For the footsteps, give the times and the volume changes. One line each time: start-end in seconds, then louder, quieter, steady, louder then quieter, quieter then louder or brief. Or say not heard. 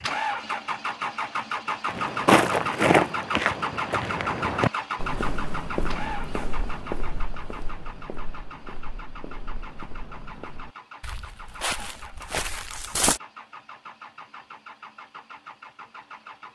1.9-13.2 quieter then louder.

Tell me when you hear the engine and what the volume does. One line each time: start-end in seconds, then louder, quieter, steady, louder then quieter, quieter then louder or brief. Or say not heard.
0.0-16.5 quieter.